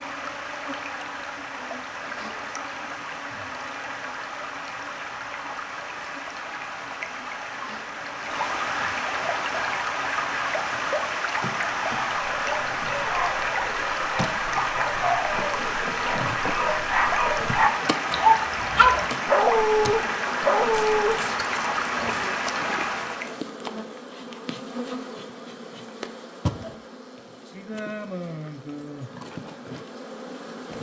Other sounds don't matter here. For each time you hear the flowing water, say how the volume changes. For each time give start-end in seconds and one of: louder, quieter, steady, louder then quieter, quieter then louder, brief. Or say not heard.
0.0-23.4 louder.